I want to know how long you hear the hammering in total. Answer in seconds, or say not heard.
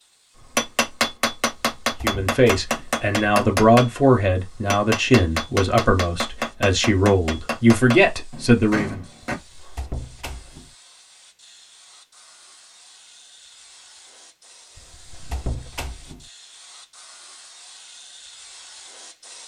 9 s.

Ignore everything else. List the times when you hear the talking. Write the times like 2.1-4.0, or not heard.
2.0-9.1.